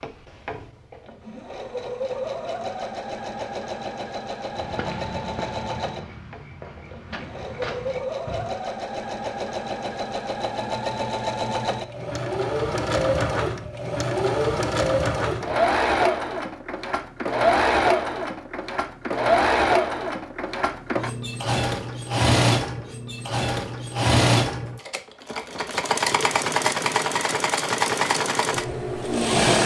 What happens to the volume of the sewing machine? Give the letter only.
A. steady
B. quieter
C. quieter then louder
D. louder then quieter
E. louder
E.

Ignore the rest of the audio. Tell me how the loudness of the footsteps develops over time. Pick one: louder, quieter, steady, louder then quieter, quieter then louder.
quieter then louder.